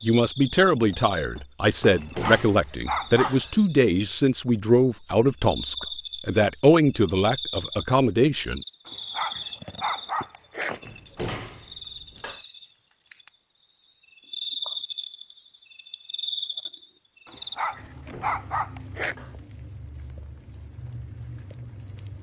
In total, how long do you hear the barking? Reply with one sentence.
The barking can be heard for 5 seconds in total.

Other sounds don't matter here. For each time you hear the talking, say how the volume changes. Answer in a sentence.
The talking can be heard from 0.0 to 8.6 s, at a steady volume.